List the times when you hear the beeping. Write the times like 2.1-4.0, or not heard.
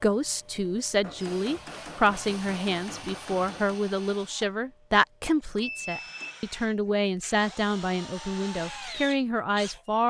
5.5-6.4.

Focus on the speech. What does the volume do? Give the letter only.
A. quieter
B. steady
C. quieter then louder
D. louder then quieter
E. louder
B.